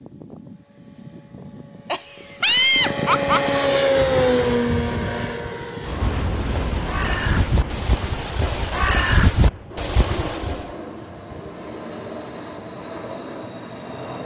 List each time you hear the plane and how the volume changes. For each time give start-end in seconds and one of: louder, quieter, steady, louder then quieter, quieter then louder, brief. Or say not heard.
0.0-14.2 louder then quieter.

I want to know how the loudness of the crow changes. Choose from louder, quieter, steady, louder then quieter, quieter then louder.
louder.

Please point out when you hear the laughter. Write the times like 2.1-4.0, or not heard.
1.9-3.6.